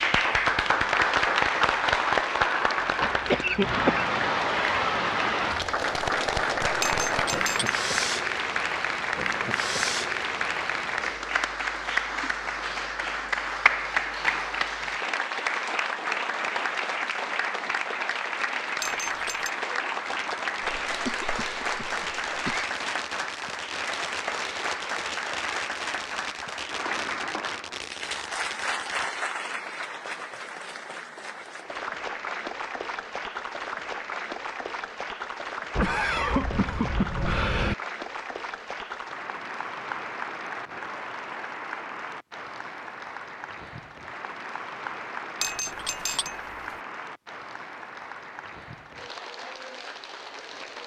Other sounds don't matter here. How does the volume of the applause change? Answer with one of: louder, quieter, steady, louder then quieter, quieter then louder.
quieter.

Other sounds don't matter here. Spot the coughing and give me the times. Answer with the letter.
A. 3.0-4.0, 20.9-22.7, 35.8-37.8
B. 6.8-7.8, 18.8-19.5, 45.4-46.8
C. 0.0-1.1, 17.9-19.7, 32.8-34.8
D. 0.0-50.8
A.